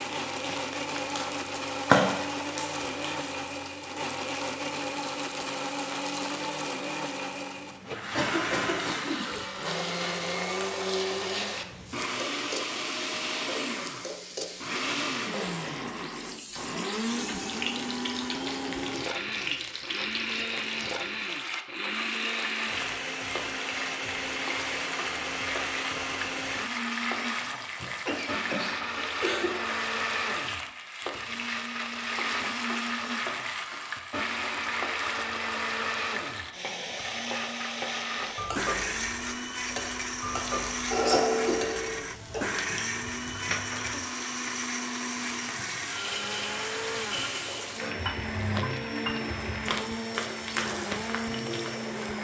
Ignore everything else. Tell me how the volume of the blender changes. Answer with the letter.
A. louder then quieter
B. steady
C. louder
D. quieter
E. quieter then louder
B.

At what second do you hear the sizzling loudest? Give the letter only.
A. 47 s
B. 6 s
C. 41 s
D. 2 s
D.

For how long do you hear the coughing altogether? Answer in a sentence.
You can hear the coughing for 4 seconds altogether.